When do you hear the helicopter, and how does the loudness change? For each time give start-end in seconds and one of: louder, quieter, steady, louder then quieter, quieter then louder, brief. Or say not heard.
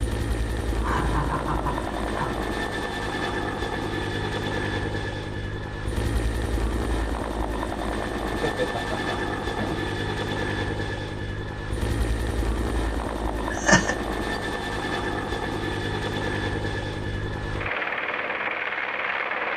0.0-19.5 steady.